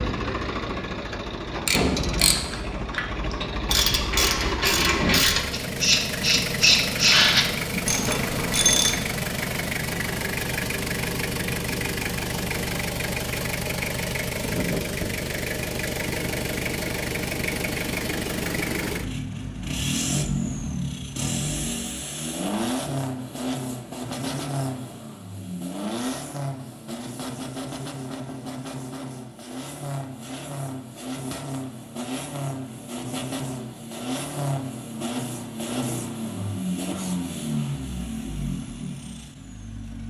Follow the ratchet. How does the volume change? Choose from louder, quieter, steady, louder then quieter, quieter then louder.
louder then quieter.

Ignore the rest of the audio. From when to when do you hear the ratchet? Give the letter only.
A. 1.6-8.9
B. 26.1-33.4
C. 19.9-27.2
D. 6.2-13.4
A.